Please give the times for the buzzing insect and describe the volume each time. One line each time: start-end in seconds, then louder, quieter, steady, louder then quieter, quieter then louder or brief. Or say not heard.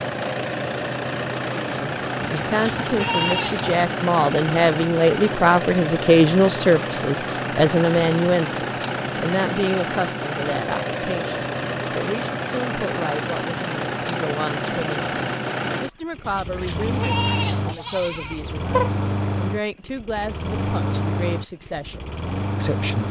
not heard.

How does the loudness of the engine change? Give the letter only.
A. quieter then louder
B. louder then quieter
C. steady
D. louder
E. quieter
C.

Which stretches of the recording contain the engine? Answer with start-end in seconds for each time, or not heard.
0.0-23.0.